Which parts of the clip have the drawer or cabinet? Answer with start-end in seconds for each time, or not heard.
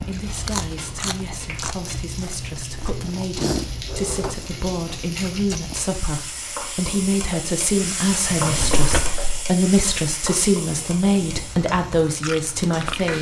3.7-4.3, 8.3-9.3.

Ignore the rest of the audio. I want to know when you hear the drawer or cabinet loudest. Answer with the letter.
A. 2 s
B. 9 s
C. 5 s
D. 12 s
B.